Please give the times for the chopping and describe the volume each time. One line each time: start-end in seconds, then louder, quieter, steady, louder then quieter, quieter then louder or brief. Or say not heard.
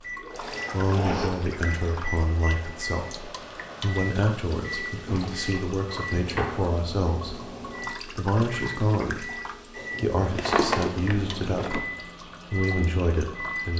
not heard.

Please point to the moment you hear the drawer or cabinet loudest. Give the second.
11 s.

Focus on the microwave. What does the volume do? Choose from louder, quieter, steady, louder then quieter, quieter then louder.
steady.